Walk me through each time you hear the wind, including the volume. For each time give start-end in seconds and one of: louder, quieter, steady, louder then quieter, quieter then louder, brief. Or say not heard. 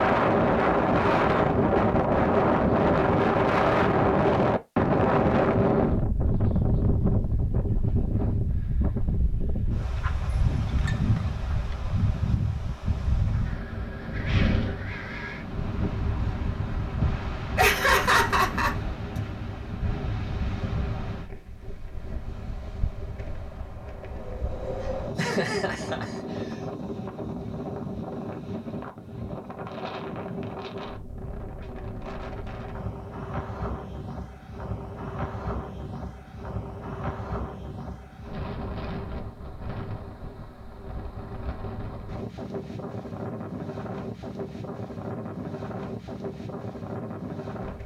0.0-47.8 quieter.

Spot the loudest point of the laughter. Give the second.
18 s.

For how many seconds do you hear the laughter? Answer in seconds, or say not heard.
3 s.